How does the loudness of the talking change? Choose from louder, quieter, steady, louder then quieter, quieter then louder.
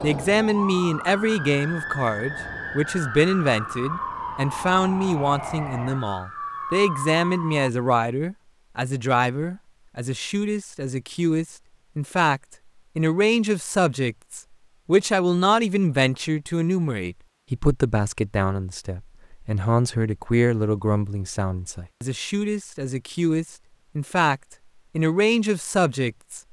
steady.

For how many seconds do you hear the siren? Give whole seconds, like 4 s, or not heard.
8 s.